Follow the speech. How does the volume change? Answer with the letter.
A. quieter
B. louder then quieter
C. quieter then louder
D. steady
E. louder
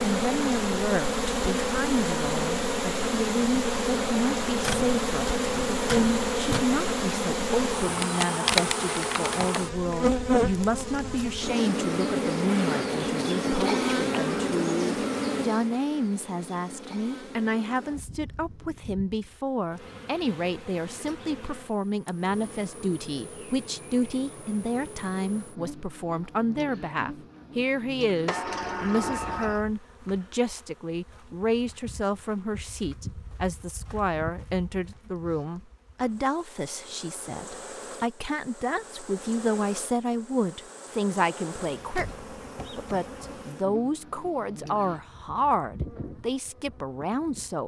D.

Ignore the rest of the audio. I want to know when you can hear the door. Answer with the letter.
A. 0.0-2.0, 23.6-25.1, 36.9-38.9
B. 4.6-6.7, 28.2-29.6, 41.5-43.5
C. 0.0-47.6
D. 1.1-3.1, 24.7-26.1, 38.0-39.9
B.